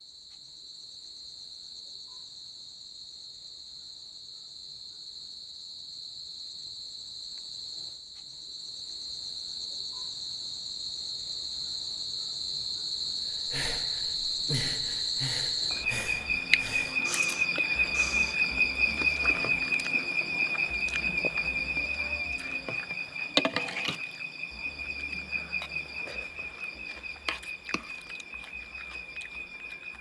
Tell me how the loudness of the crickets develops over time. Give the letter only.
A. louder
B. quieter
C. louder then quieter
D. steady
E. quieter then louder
C.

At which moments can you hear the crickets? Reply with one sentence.
The crickets can be heard from 0.0 to 29.9 s.